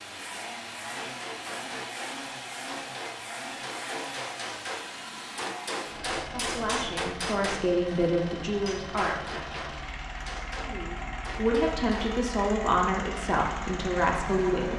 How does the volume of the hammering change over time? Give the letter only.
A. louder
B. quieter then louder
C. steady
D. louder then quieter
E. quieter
D.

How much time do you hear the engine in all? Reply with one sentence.
You can hear the engine for 15 seconds altogether.